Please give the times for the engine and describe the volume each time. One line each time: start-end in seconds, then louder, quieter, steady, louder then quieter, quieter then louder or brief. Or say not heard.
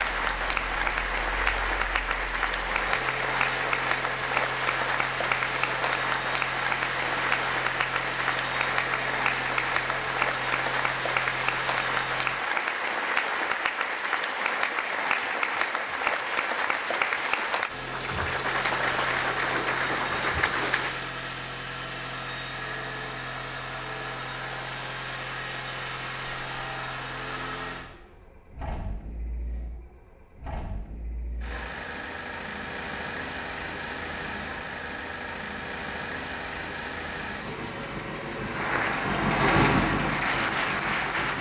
0.0-12.3 louder
17.6-41.3 quieter then louder.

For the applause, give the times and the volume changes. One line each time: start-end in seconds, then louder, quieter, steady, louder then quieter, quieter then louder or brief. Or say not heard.
0.0-21.1 steady
38.5-41.3 brief.